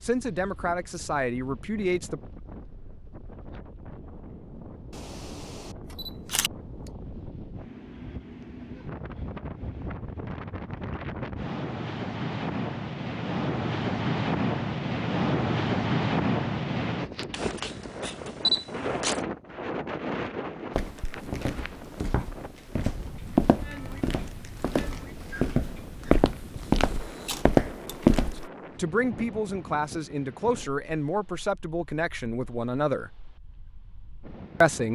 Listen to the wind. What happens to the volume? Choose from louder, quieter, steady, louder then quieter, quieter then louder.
louder then quieter.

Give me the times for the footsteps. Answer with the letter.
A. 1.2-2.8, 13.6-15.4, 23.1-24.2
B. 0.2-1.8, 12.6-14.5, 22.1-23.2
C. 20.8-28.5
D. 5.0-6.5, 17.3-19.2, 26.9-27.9
C.